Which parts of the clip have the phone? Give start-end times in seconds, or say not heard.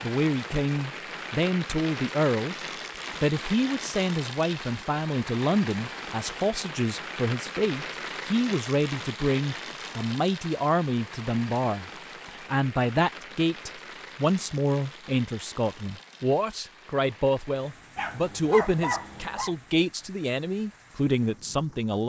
not heard.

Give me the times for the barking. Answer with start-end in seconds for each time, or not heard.
17.9-19.6.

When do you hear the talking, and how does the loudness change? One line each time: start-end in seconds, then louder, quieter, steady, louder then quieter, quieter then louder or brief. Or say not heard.
0.0-2.5 brief
3.2-22.0 steady.